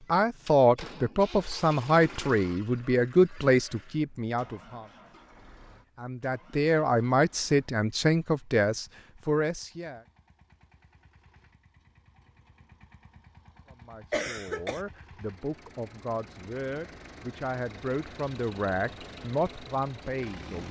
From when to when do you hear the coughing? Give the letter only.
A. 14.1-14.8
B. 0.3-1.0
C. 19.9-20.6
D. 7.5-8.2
A.